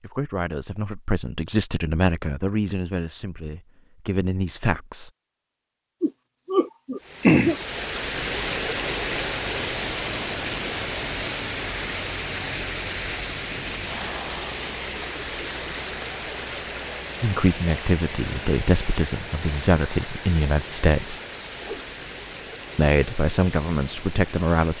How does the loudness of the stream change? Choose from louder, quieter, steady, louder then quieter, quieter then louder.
quieter.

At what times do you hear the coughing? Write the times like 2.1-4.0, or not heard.
6.0-7.5.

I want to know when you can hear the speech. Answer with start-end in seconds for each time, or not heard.
0.0-5.1, 17.2-21.2, 22.8-24.7.